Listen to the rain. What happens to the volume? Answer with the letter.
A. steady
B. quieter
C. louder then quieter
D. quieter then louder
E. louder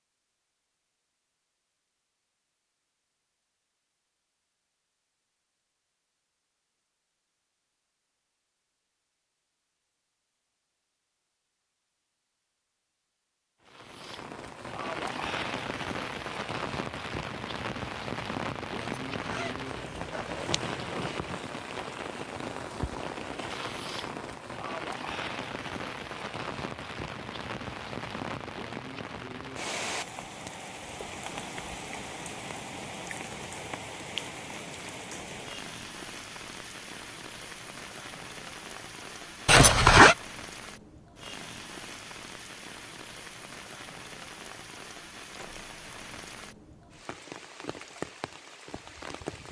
B.